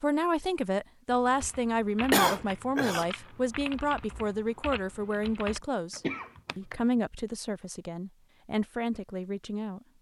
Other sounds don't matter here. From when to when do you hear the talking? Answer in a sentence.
You can hear the talking from 0.0 to 9.8 s.